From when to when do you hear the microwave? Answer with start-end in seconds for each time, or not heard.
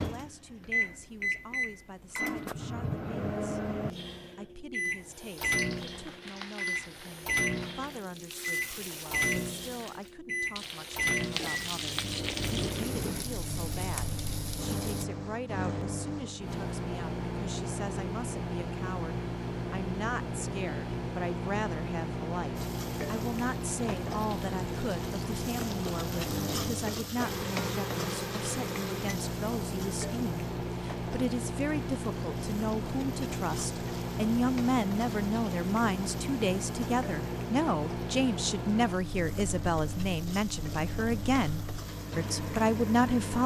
0.0-43.4.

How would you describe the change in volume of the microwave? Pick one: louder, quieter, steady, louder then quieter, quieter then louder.
steady.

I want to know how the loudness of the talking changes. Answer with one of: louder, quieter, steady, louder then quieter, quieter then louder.
louder.